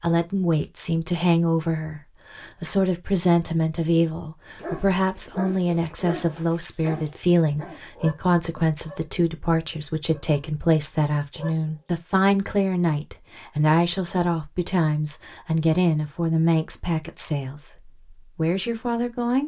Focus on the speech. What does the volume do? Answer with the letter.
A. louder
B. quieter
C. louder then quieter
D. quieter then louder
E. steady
E.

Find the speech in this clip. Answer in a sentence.
You can hear the speech from 0.0 to 19.4 s.